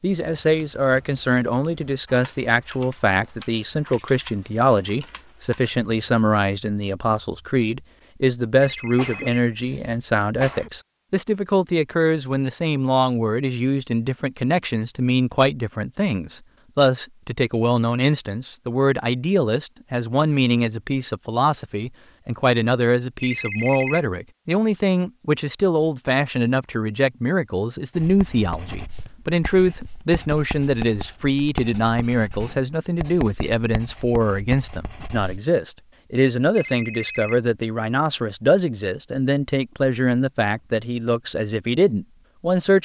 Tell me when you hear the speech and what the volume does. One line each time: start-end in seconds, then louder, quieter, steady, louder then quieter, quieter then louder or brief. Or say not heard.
0.0-42.8 steady.